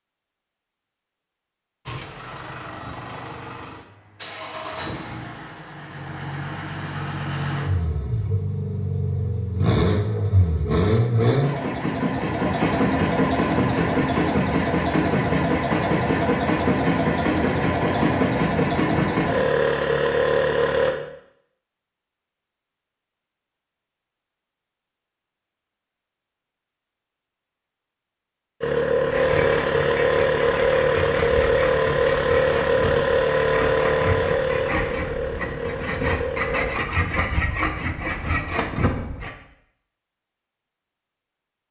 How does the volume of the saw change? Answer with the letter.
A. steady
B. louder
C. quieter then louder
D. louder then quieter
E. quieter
B.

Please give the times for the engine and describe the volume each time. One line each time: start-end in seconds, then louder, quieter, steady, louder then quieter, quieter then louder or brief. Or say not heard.
1.9-20.9 louder
28.6-36.8 quieter.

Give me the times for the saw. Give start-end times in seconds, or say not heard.
29.1-39.3.